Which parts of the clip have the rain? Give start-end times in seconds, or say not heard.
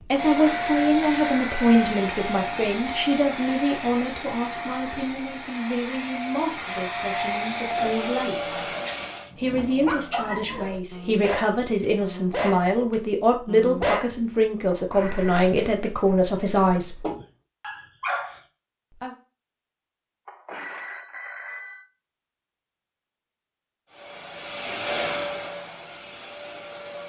not heard.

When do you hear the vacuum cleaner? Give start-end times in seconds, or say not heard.
0.0-9.3, 23.9-27.0.